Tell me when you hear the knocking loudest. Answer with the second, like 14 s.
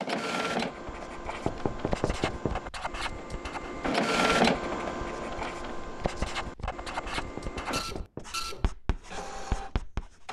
2 s.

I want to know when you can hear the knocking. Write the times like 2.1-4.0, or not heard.
1.4-2.6, 7.2-8.3.